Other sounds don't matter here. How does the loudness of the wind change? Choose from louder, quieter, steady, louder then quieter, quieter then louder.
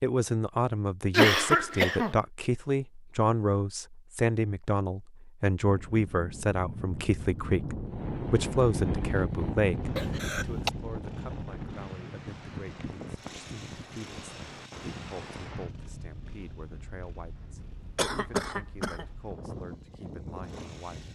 quieter.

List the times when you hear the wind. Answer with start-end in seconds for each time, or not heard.
5.6-21.1.